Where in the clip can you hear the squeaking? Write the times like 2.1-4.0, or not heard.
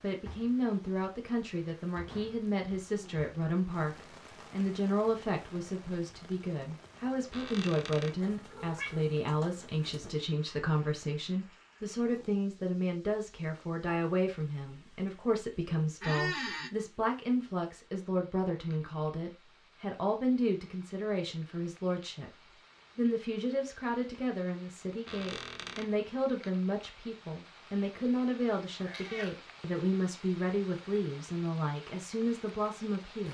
7.3-8.2, 16.0-16.7, 25.1-25.9.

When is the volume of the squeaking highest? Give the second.
16 s.